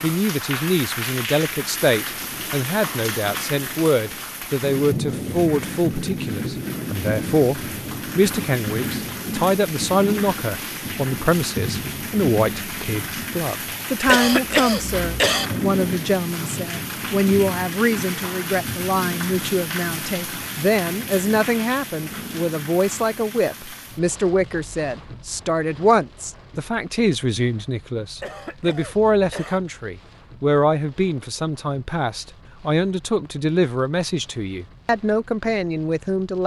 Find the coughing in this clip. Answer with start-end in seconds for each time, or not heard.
14.1-15.5, 28.1-29.6.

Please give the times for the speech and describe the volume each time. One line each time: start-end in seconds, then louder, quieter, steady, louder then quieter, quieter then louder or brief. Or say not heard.
0.0-36.4 steady.